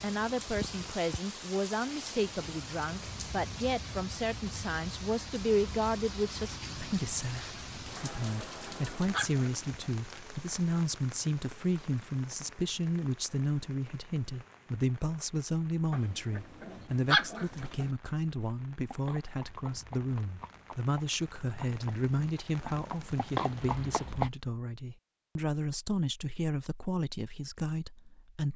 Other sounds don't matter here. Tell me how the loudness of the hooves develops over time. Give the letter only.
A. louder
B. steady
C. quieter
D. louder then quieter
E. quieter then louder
A.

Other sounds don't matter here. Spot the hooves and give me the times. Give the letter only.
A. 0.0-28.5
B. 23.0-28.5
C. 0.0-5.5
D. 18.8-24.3
D.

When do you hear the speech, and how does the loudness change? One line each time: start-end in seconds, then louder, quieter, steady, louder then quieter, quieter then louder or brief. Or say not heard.
0.0-28.5 steady.